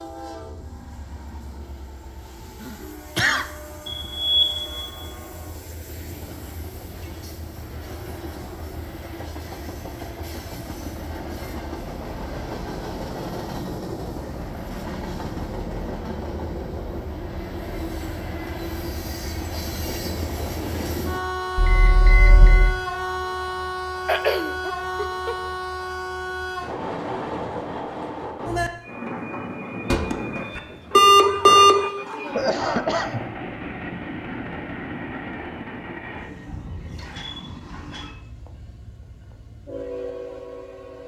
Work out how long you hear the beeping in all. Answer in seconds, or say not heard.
4 s.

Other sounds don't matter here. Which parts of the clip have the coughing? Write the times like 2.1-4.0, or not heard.
2.6-3.5, 24.1-25.4, 30.9-33.2.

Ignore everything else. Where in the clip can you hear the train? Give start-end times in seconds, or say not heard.
0.0-41.0.